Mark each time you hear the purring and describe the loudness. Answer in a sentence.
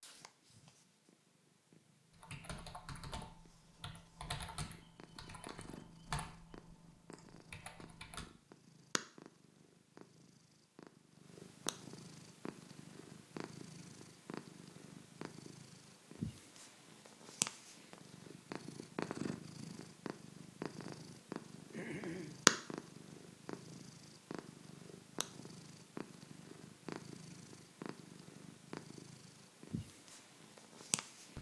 You can hear the purring from 0.0 to 31.3 s, getting louder then quieter.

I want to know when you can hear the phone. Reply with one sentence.
The phone can't be heard in this clip.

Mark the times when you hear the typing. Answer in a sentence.
You can hear the typing from 2.1 to 8.3 s.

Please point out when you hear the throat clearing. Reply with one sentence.
The throat clearing can be heard from 21.7 to 22.4 s.